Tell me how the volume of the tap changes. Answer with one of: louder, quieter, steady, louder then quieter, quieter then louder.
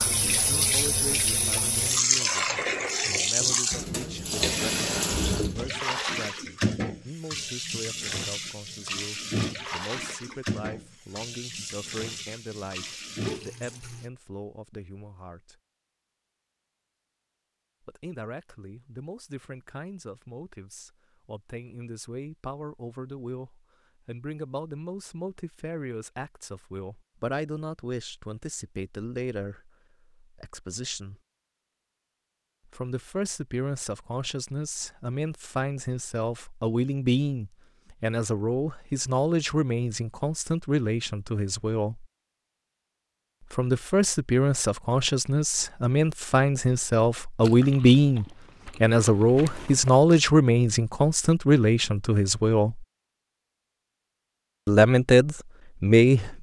quieter.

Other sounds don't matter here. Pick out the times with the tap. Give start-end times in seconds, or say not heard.
0.0-14.1.